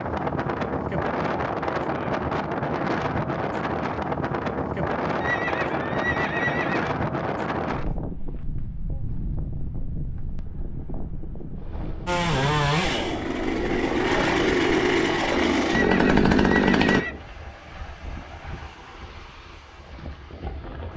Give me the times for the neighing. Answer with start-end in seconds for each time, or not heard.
5.2-6.9, 15.7-17.1.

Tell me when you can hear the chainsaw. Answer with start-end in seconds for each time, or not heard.
12.1-17.1.